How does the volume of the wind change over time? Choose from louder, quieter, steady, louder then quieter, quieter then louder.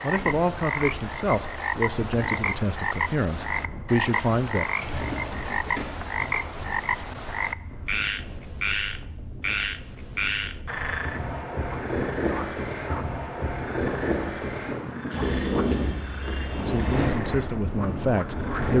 louder.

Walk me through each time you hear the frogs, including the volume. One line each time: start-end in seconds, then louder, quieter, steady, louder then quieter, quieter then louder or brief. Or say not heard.
0.0-18.7 quieter.